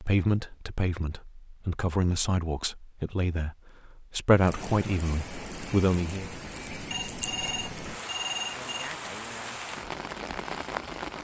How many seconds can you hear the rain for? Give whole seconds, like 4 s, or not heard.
7 s.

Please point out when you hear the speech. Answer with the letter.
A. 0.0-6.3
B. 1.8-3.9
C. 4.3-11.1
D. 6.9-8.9
A.